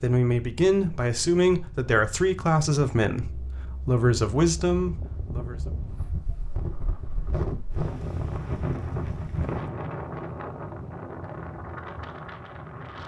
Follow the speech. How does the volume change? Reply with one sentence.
The volume of the speech stays about the same.